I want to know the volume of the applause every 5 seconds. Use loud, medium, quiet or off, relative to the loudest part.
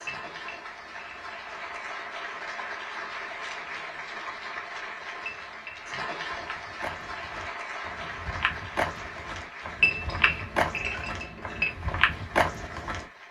loud, loud, medium.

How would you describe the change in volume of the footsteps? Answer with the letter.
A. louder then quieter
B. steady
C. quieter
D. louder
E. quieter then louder
D.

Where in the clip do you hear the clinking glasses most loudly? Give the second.
10 s.